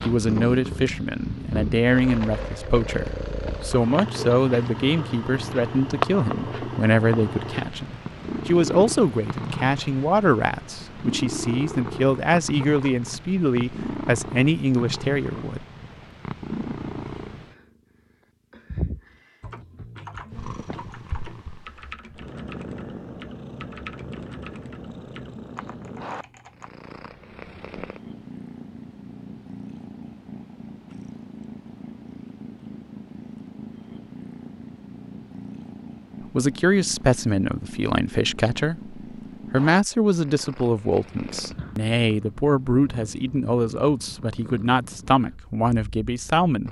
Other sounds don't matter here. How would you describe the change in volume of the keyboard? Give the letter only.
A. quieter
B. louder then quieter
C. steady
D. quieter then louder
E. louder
A.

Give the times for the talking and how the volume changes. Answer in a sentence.
You can hear the talking from 0.1 to 15.7 s, at a steady volume; and from 36.4 to 46.6 s, at a steady volume.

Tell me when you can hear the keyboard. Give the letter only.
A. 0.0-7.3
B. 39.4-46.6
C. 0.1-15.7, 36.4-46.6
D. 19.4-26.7
D.